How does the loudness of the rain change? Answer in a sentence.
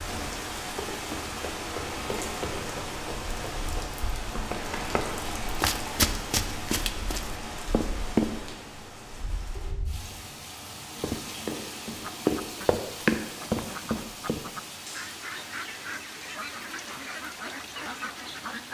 The loudness of the rain goes down.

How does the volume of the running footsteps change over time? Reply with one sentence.
The loudness of the running footsteps goes up.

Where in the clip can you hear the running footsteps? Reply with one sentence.
You can hear the running footsteps from 0.7 to 8.3 s and from 11.0 to 14.4 s.